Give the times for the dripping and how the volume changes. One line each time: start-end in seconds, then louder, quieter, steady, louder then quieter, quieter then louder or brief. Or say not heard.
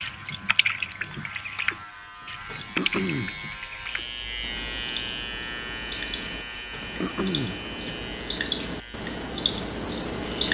0.0-10.5 quieter then louder.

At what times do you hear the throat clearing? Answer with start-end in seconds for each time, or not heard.
2.5-3.4, 6.5-8.0.